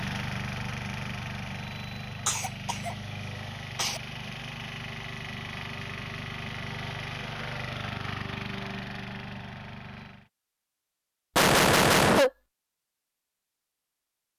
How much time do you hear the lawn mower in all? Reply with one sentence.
The lawn mower can be heard for 10 seconds in total.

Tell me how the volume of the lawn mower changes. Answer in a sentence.
The volume of the lawn mower stays about the same.